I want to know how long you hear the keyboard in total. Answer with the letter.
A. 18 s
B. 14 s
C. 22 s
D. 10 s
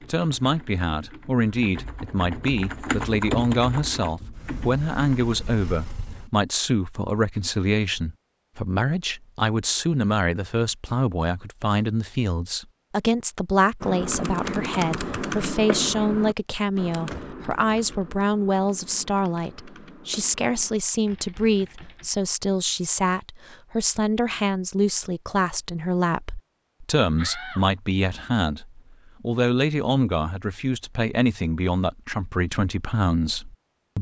B.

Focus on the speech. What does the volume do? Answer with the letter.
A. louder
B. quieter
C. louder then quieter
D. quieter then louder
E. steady
E.